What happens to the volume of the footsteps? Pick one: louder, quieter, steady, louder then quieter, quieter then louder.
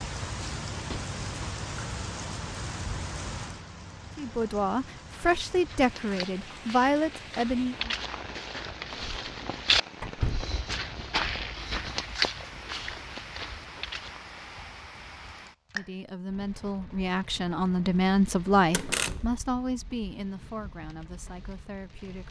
louder then quieter.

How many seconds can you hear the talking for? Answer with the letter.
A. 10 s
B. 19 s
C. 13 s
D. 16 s
A.